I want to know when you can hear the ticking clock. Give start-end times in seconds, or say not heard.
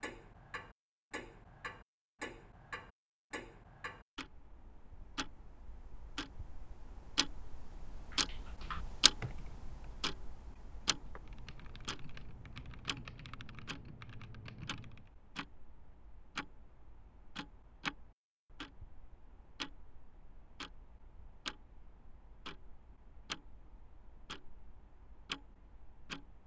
0.0-26.4.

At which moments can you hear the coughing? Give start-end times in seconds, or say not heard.
not heard.